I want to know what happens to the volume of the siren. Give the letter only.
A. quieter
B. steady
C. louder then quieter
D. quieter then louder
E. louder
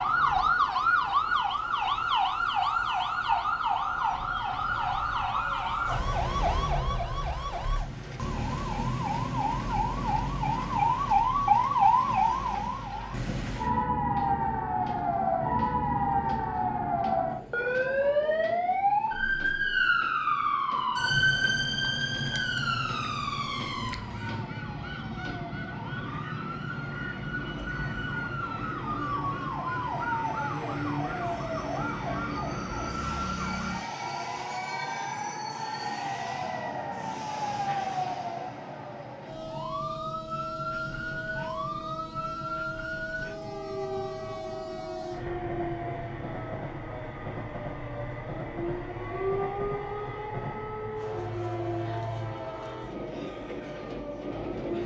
A.